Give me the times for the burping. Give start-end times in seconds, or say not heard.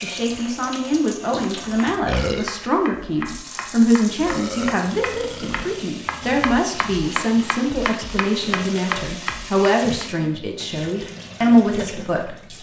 2.0-2.5, 4.2-5.8, 8.4-9.2.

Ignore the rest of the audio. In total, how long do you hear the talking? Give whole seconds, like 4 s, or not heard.
12 s.